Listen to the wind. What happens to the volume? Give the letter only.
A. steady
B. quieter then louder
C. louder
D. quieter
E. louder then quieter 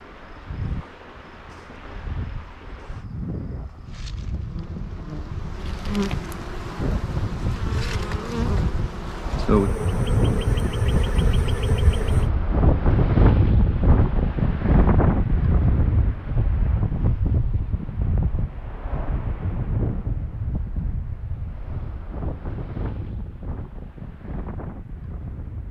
E.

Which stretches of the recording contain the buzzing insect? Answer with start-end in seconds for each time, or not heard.
0.0-12.3.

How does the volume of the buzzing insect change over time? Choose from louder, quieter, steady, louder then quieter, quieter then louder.
louder.